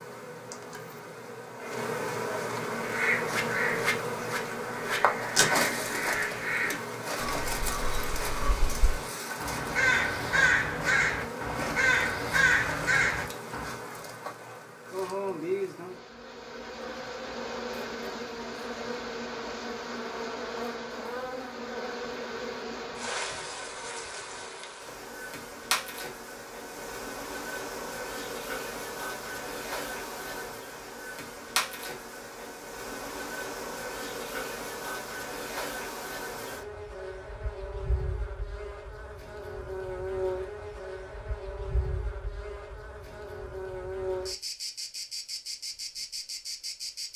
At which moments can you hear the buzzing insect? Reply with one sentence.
The buzzing insect can be heard from 0.0 to 47.1 s.